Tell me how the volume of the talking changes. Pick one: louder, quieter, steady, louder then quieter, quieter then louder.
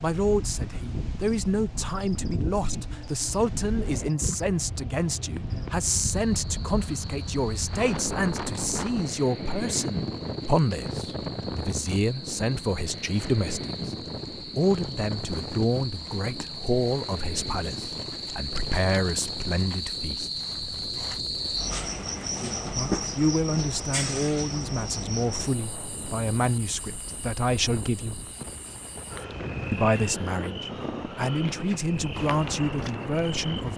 steady.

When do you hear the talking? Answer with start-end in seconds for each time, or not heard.
0.0-20.3, 22.7-28.2, 29.7-33.7.